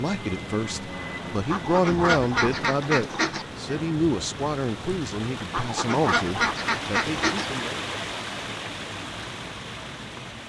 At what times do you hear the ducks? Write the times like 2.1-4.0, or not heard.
1.5-3.5, 5.5-7.5.